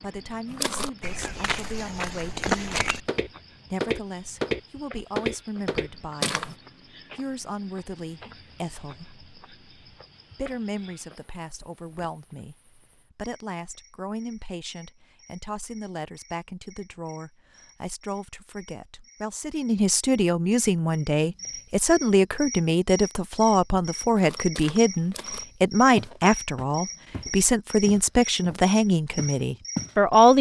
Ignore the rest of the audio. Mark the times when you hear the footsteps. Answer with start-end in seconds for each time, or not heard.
0.5-6.5, 24.1-30.0.